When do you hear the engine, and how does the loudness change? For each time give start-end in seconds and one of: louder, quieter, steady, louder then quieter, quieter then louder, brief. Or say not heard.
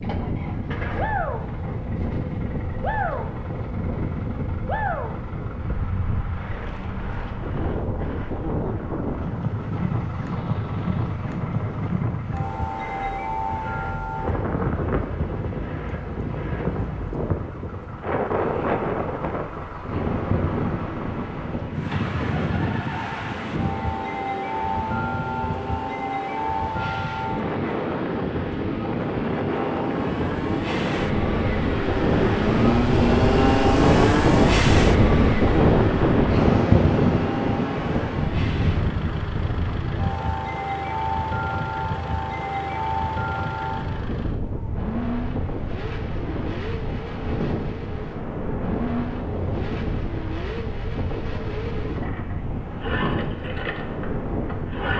0.0-54.9 louder then quieter.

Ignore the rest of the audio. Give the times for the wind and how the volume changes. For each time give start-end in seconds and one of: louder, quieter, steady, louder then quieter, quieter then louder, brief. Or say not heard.
0.0-54.9 louder then quieter.